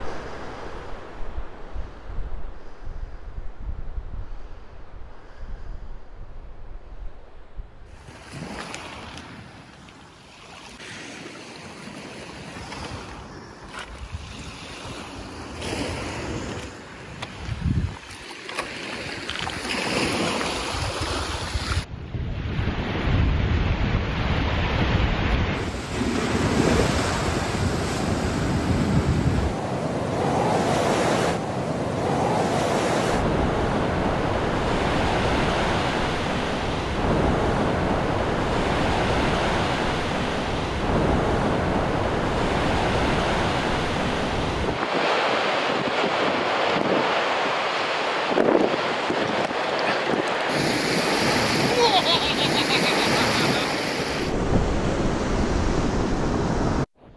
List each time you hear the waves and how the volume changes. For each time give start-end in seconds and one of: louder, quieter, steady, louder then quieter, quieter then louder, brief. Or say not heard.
0.0-57.1 louder.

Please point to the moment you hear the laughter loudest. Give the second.
52 s.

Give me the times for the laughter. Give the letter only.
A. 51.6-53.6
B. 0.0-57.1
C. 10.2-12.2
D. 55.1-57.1
A.